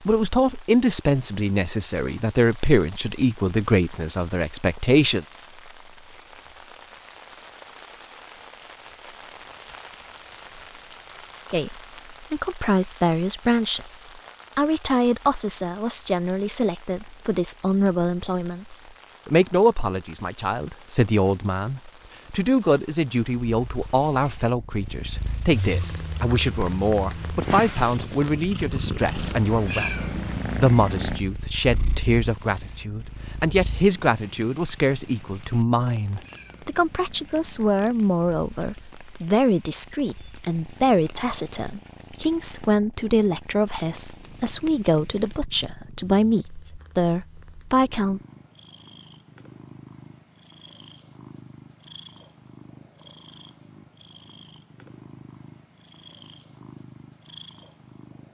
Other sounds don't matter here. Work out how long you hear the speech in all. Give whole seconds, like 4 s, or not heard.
42 s.